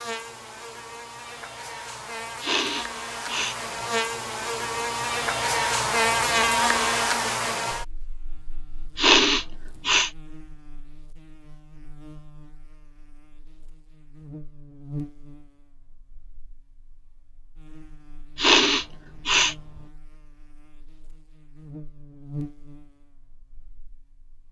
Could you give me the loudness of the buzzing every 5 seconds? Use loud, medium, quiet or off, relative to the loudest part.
medium, loud, quiet, quiet, quiet.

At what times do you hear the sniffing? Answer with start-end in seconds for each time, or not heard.
2.4-3.5, 8.9-10.1, 18.4-19.6.